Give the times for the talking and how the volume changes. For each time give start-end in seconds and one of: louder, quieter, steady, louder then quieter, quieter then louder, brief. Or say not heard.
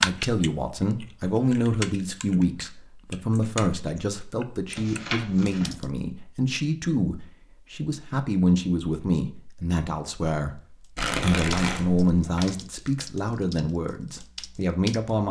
0.0-15.2 steady.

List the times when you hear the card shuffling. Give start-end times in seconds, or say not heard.
4.8-5.8, 10.9-12.5.